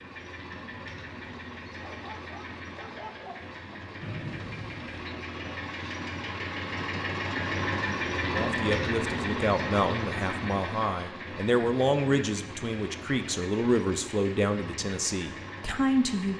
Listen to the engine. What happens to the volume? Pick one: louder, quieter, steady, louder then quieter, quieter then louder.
louder then quieter.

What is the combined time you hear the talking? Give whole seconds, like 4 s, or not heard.
8 s.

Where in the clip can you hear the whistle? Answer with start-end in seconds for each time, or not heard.
4.0-5.2.